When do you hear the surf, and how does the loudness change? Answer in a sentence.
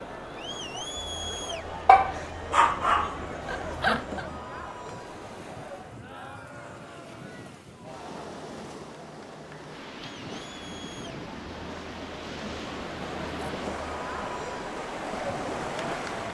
The surf can be heard from 0.0 to 16.2 s, getting louder.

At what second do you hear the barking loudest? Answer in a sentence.
The loudest moment of the barking is at 2 seconds.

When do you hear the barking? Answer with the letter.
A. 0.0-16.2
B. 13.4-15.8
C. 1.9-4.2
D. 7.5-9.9
C.